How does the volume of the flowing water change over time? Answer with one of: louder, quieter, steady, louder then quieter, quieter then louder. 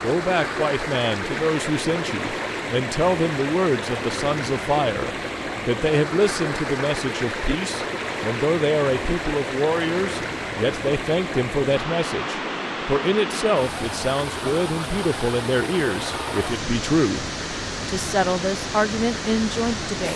steady.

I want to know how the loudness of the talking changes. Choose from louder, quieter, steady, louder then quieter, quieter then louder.
steady.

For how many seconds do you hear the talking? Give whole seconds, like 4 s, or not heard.
20 s.